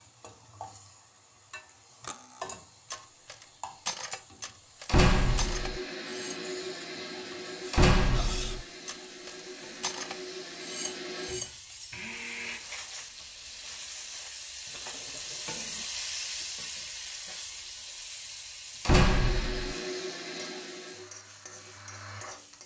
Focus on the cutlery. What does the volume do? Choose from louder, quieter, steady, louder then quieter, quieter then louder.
quieter.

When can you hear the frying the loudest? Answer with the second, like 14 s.
16 s.